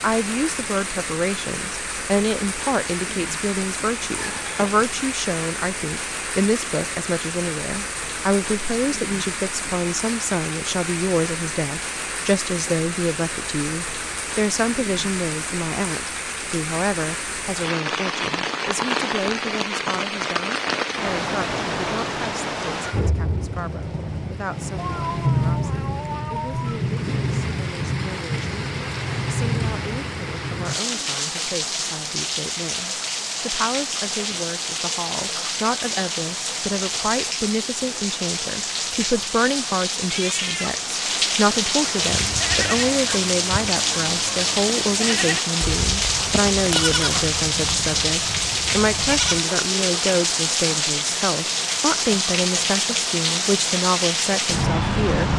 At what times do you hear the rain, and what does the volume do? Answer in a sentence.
The rain can be heard from 0.0 to 55.3 s, getting louder.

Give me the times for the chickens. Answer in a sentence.
You can't hear the chickens here.